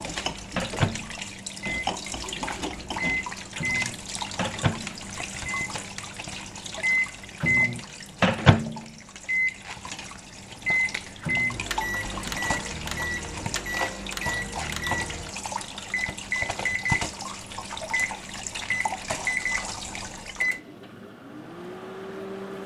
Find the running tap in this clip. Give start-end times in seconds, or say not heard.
0.0-20.6.